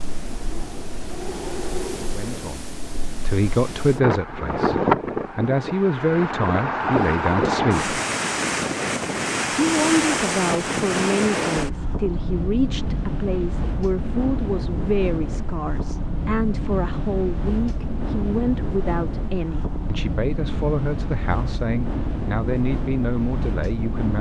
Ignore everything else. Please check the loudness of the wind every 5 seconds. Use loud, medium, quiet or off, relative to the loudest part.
loud, loud, loud, medium, medium.